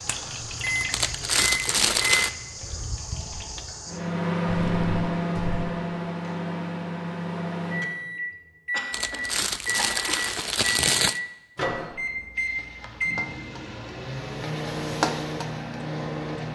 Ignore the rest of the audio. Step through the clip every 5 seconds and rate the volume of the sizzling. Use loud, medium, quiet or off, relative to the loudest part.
medium, off, medium, loud.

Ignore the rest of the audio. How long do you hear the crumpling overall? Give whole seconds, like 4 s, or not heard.
4 s.